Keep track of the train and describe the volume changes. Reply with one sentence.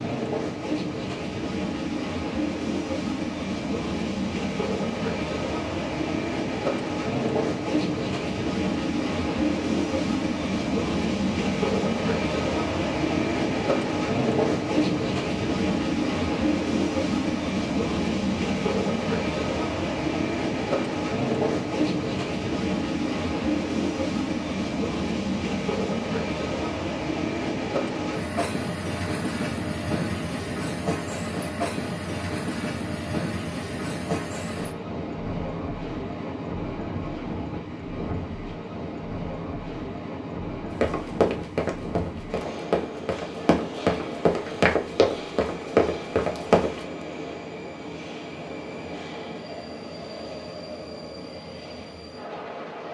The volume of the train goes down.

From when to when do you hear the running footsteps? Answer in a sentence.
The running footsteps can be heard from 40.8 to 46.7 s.